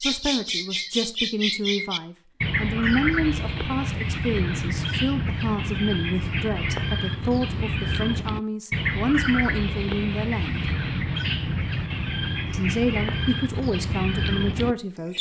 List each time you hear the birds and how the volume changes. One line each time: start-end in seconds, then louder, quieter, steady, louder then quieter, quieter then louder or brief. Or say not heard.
0.0-15.1 steady.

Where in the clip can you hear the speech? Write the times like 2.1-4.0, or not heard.
0.0-10.7, 12.5-15.1.